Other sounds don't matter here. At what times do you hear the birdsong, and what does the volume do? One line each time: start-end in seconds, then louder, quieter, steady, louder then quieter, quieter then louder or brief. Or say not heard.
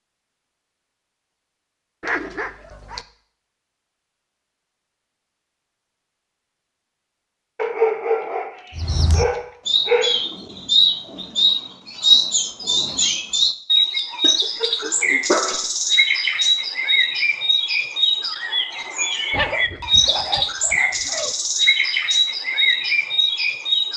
8.8-23.9 steady.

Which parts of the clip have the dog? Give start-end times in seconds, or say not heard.
2.0-3.0, 7.5-10.2, 14.2-15.7, 19.3-21.4.